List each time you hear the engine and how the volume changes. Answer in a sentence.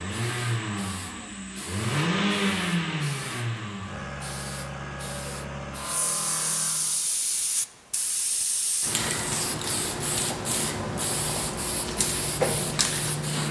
The engine can be heard from 0.0 to 7.0 s, getting louder then quieter.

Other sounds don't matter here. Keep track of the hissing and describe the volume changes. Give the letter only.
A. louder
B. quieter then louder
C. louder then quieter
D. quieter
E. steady
A.